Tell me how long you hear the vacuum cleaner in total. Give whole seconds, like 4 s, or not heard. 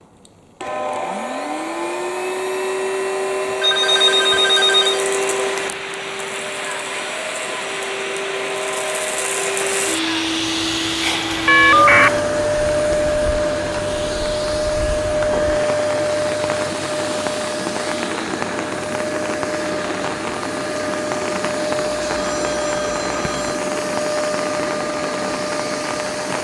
26 s.